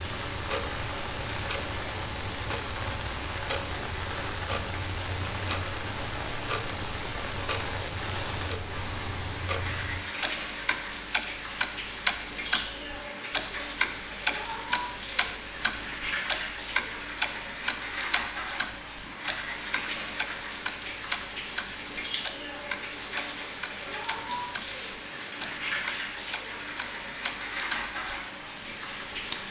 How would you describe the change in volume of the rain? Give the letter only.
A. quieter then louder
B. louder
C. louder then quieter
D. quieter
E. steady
E.